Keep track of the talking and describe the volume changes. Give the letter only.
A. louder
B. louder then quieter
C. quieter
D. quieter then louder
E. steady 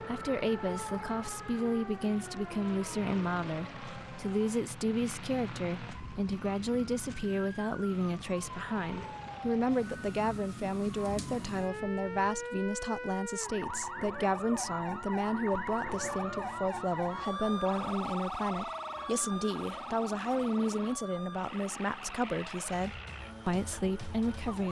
E.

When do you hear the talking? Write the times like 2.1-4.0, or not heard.
0.0-24.6.